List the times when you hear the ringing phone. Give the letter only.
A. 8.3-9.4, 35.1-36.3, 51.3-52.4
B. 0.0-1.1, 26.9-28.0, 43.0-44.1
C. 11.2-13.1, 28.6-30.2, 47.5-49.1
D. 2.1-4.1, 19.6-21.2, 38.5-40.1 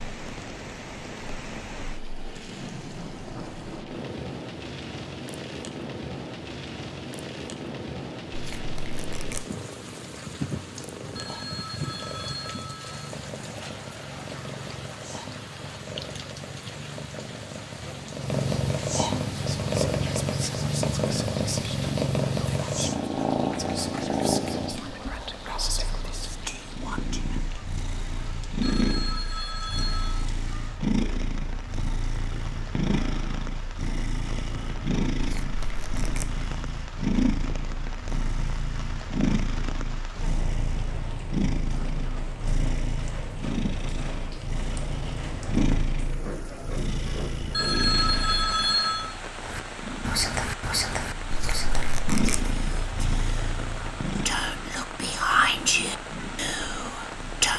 C.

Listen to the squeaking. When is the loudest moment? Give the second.
52 s.